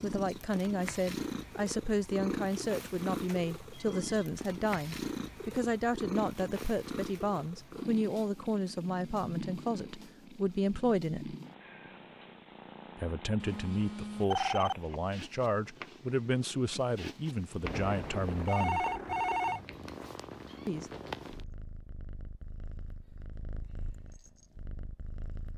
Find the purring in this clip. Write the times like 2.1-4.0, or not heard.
0.0-25.5.